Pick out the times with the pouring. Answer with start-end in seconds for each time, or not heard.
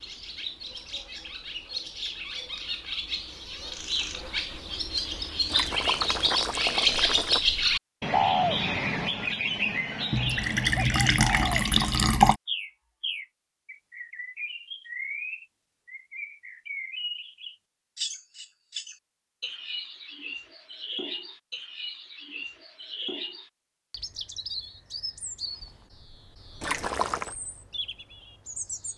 5.5-7.4, 10.1-12.3, 26.6-27.4.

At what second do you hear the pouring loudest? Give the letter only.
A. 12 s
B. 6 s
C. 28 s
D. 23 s
A.